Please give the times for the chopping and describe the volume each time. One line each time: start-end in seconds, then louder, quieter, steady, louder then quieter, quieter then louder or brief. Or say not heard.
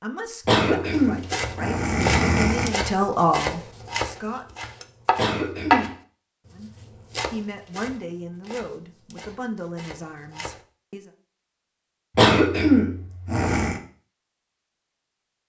0.9-10.6 louder then quieter.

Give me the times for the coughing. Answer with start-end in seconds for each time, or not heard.
0.5-2.8, 5.2-5.9, 12.2-13.8.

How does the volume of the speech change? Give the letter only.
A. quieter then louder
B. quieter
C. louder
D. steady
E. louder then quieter
E.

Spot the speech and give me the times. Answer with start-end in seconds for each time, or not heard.
0.0-4.5, 6.5-11.1.